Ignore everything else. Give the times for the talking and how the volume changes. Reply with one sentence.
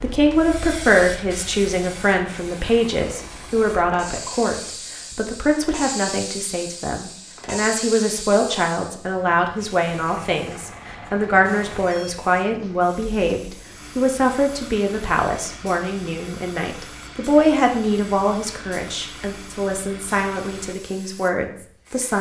The talking can be heard from 0.0 to 22.1 s, at a steady volume.